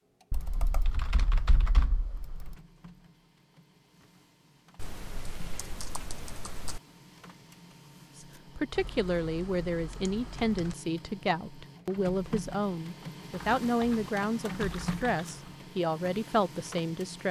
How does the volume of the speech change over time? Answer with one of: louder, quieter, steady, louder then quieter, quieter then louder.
steady.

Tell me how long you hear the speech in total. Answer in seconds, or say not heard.
9 s.